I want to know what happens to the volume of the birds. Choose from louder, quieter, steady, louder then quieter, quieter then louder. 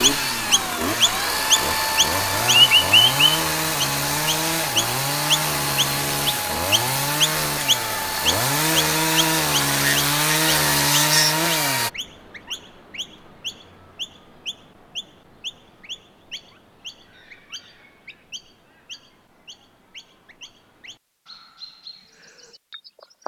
quieter.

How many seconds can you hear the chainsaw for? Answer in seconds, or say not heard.
12 s.